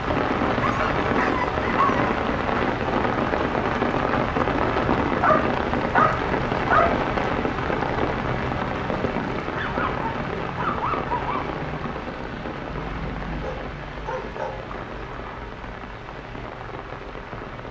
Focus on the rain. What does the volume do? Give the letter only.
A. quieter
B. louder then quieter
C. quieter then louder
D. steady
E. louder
A.